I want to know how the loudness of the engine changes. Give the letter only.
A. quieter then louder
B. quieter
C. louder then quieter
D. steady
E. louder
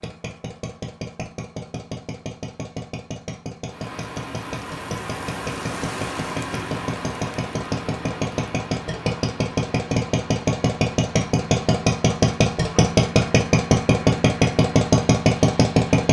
E.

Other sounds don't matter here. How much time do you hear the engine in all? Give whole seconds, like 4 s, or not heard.
16 s.